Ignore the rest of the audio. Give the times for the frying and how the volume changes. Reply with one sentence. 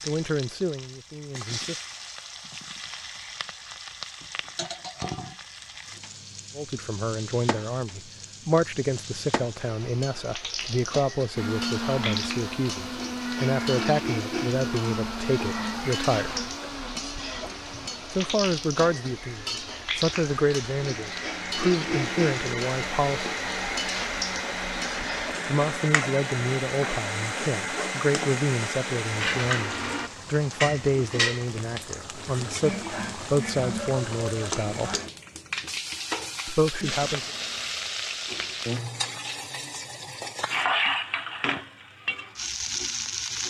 You can hear the frying from 0.0 to 43.4 s, getting louder.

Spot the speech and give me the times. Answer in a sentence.
The speech can be heard from 0.1 to 1.8 s, from 6.5 to 16.4 s, from 18.1 to 23.4 s, from 25.4 to 35.0 s and from 36.5 to 37.3 s.